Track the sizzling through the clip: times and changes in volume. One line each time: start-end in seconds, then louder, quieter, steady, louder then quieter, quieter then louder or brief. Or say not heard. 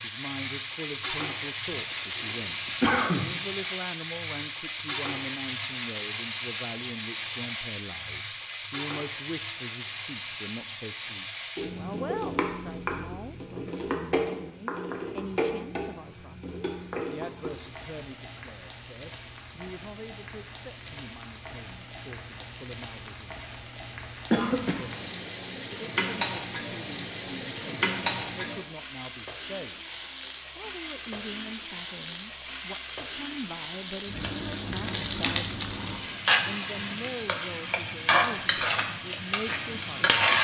0.0-40.3 quieter then louder.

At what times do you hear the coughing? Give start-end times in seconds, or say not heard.
1.7-3.3, 24.3-24.9.